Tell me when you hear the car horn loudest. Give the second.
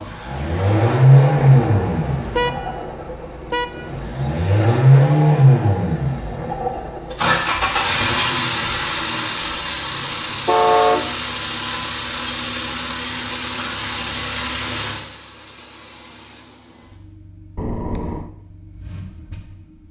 11 s.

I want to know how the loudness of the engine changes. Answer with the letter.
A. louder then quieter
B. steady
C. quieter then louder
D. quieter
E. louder
D.